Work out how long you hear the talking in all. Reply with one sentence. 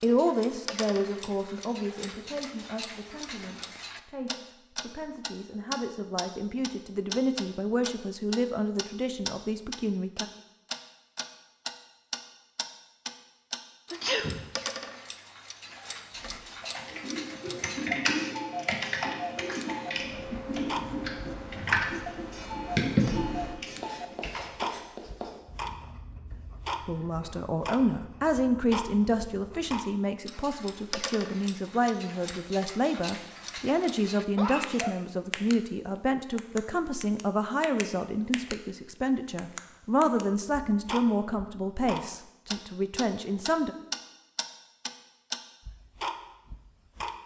The talking can be heard for 27 seconds in total.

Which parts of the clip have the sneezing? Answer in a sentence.
The sneezing can be heard from 13.9 to 14.4 s and from 34.3 to 35.0 s.